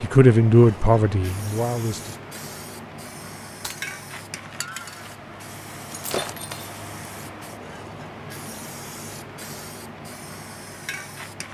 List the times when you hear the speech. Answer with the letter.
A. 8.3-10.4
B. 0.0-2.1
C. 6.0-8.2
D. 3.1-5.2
B.